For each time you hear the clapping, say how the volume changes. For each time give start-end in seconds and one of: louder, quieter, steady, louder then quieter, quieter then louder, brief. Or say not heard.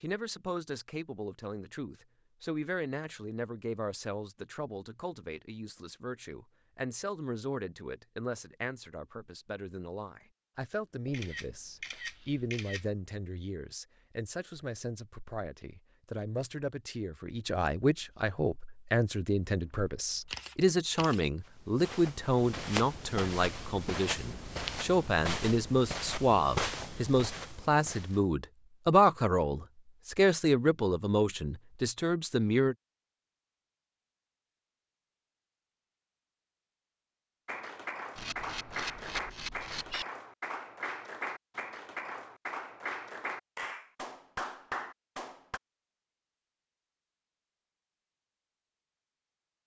37.5-45.6 steady.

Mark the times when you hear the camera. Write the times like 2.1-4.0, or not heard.
11.1-12.9, 20.2-21.2, 38.1-40.0.